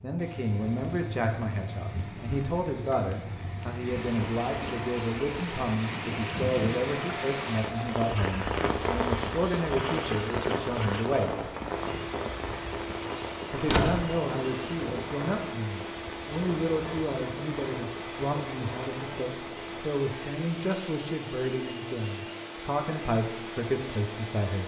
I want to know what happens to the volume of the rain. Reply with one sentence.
The volume of the rain goes up, then down.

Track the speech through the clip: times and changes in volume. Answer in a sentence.
You can hear the speech from 0.0 to 11.5 s, at a steady volume; and from 13.5 to 24.6 s, at a steady volume.